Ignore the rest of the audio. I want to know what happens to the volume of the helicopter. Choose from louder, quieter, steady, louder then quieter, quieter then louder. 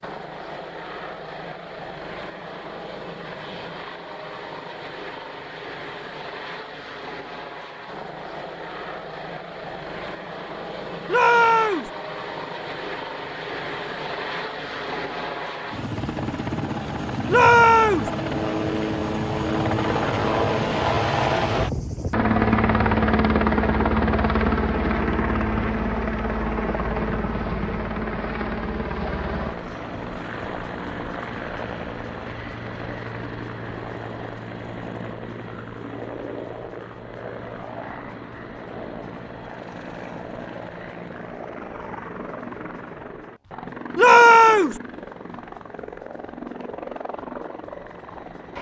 louder then quieter.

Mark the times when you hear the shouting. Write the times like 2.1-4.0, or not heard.
11.1-11.9, 17.2-18.1, 44.0-44.8.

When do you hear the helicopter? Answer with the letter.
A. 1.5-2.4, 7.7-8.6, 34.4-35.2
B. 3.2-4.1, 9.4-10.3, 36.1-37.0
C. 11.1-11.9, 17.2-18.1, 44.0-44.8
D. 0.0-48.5
D.